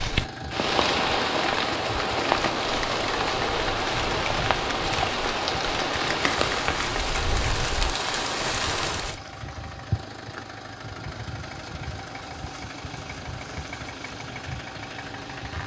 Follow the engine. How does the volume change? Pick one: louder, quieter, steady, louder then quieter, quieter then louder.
steady.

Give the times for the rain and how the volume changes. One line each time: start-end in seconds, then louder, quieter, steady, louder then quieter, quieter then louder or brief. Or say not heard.
0.0-9.2 steady.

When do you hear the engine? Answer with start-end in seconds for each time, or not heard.
0.0-15.6.